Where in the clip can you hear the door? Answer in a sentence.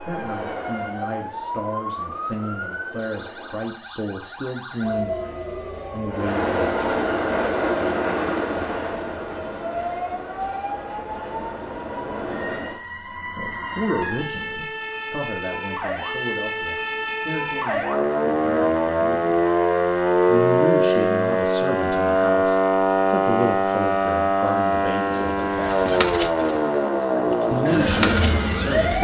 You can't hear the door here.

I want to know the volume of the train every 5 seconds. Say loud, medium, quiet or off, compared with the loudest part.
quiet, loud, medium, off, off, off.